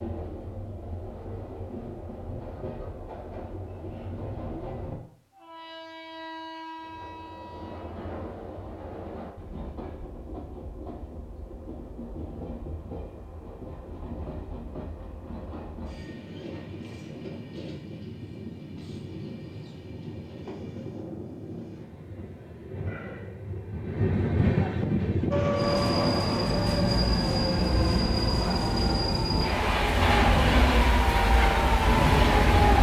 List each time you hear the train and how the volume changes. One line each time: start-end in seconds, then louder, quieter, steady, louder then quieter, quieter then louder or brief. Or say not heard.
0.0-32.7 louder.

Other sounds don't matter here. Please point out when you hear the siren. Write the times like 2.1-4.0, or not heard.
25.3-32.7.